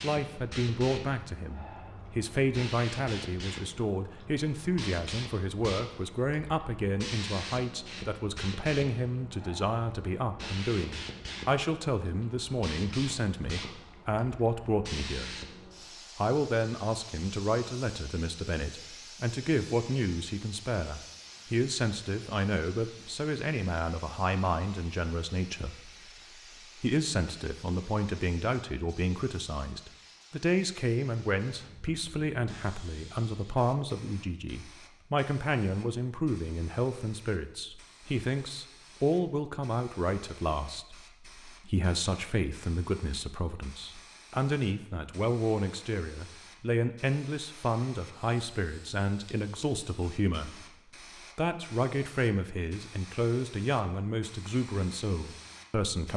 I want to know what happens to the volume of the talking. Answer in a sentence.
The volume of the talking stays about the same.